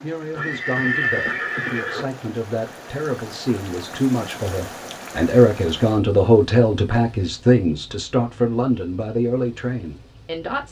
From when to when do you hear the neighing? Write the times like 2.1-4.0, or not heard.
0.3-2.0.